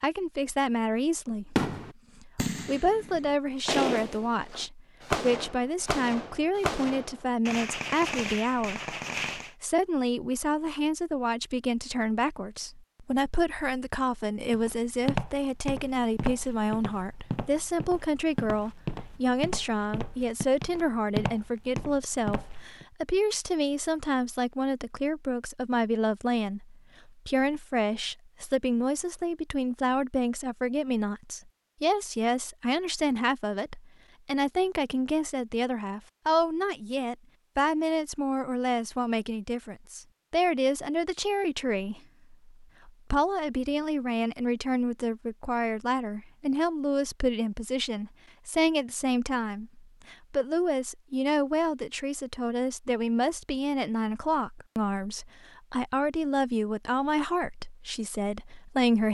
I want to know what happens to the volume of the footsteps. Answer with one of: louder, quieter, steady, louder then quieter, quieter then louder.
quieter then louder.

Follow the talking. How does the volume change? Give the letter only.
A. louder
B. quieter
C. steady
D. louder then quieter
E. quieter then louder
C.